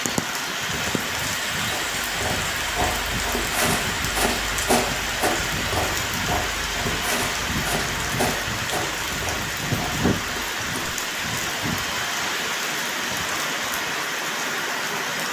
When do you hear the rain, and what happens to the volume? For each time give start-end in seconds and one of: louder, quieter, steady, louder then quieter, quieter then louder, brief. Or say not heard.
0.0-15.2 steady.